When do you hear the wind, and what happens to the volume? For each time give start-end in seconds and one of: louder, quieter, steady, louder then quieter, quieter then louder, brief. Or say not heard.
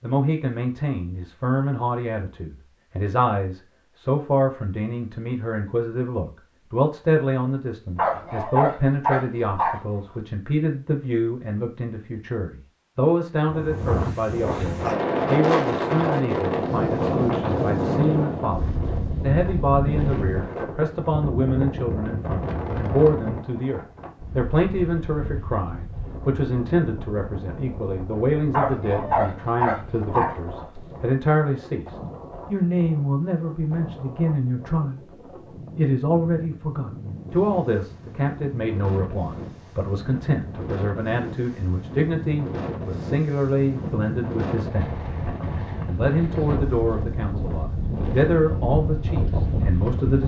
13.4-50.2 quieter then louder.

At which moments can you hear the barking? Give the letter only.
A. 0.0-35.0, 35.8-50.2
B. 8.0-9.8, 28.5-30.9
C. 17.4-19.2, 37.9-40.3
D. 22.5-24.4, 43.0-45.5
B.